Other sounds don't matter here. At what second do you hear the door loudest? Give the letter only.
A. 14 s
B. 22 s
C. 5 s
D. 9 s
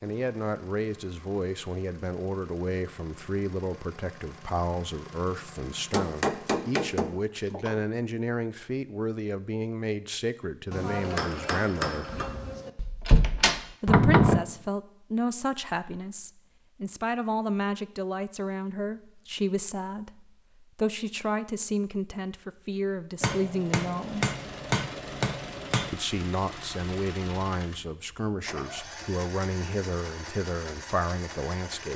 A.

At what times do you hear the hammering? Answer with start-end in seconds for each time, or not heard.
5.9-7.8, 10.7-12.7, 23.2-26.0.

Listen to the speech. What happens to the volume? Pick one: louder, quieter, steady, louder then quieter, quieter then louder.
steady.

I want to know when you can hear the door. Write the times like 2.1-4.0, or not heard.
12.1-14.4.